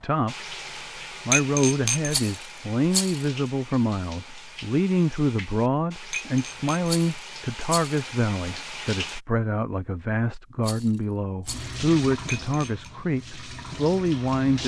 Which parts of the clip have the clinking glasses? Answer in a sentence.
You can hear the clinking glasses from 1.3 to 2.1 s, from 6.1 to 6.9 s and from 12.2 to 12.9 s.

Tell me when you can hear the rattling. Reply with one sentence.
You can hear the rattling from 2.0 to 3.2 s, from 6.8 to 8.0 s and from 10.6 to 11.8 s.